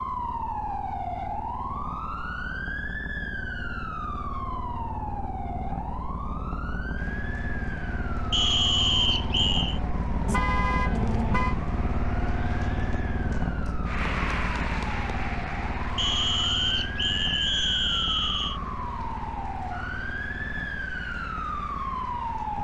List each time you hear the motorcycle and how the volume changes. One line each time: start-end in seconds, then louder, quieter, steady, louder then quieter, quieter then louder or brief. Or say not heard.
0.0-22.5 louder then quieter.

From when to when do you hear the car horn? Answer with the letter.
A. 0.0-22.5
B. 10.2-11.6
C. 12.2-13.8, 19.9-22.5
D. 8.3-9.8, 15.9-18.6
B.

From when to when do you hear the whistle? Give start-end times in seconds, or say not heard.
8.3-9.8, 15.9-18.6.